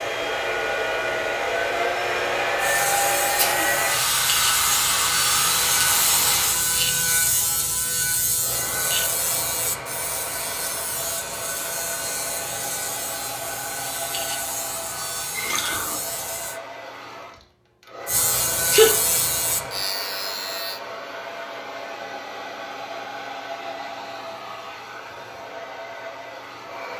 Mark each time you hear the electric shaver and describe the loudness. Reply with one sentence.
The electric shaver can be heard from 2.5 to 16.6 s, getting quieter; and briefly from 18.1 to 20.8 s.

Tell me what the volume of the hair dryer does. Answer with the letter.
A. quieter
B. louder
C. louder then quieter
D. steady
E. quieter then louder
A.